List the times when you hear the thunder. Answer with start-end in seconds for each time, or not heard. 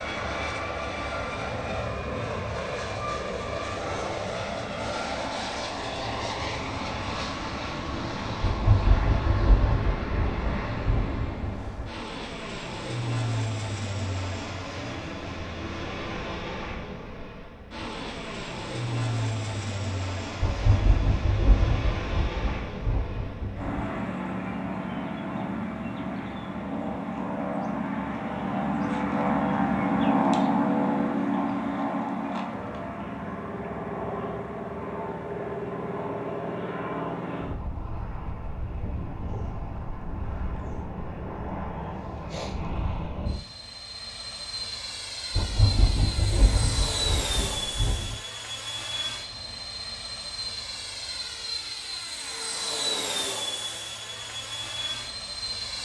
8.4-11.9, 20.4-23.8, 45.4-48.2.